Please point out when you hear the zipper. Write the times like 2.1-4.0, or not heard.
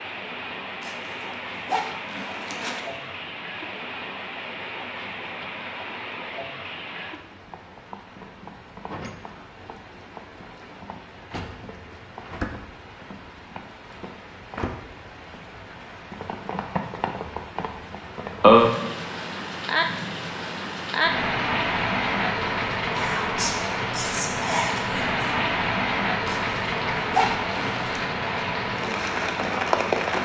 0.8-2.8, 26.2-28.0.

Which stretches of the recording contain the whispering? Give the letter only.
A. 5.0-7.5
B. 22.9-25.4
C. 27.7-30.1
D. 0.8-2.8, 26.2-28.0
B.